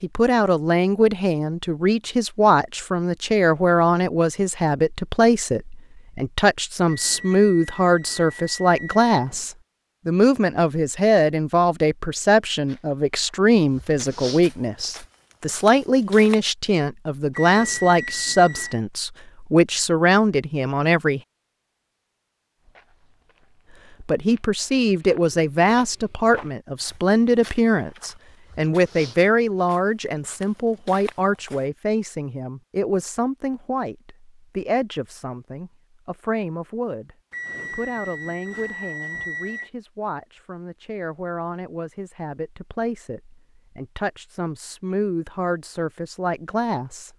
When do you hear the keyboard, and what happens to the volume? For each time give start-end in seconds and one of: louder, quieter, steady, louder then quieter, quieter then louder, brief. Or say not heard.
not heard.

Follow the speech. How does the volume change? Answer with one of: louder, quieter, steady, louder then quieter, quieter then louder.
quieter.